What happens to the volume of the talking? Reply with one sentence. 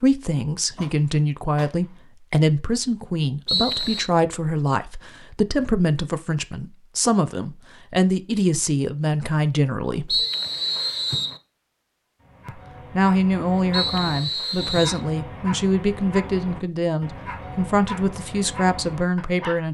The loudness of the talking stays about the same.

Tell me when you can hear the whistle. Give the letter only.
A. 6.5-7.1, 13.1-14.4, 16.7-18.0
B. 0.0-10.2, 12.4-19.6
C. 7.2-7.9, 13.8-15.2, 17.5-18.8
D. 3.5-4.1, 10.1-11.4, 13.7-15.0
D.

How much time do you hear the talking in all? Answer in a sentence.
The talking can be heard for 17 seconds in total.